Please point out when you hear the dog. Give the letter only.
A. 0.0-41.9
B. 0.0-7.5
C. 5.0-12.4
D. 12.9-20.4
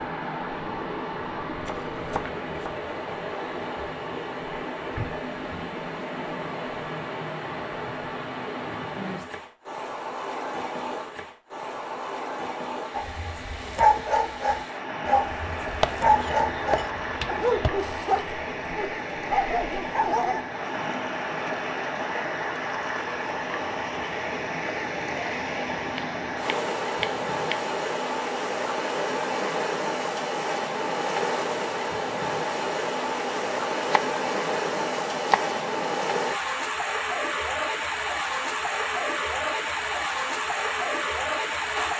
D.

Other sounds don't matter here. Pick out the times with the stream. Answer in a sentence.
You can hear the stream from 0.0 to 41.9 s.